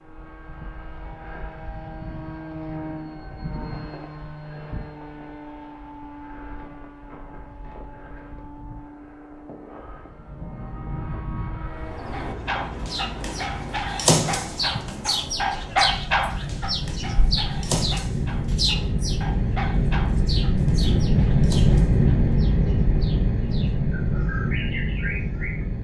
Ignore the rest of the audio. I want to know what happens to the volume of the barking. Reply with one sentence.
The volume of the barking goes down.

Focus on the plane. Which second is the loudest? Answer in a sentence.
The loudest moment of the plane is at 22 seconds.